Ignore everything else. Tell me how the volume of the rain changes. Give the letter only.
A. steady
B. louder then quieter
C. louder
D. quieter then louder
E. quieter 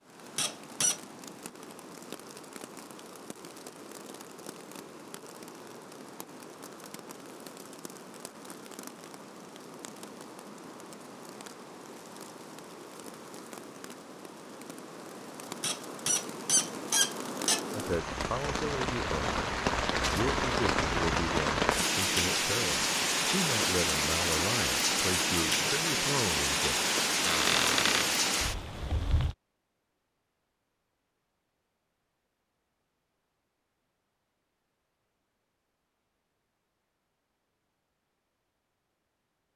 C.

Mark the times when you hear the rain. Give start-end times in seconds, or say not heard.
0.0-29.4.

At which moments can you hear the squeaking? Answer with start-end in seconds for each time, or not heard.
0.3-1.0, 15.6-17.6, 27.2-28.1.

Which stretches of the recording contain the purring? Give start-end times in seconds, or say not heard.
not heard.